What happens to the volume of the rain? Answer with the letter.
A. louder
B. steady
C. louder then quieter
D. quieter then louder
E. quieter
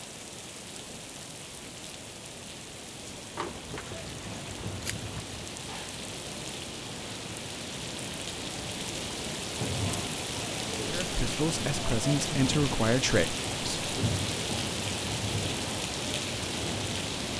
A.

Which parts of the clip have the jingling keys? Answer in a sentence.
You can hear the jingling keys from 3.4 to 5.4 s.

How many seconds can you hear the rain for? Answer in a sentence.
The rain can be heard for 17 seconds in total.